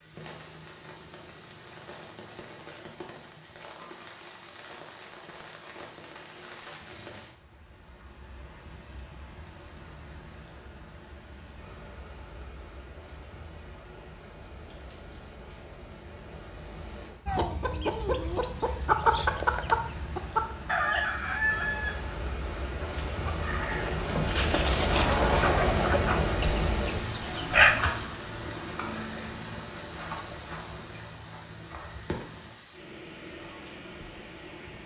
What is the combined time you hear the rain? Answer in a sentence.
The rain can be heard for 35 seconds in total.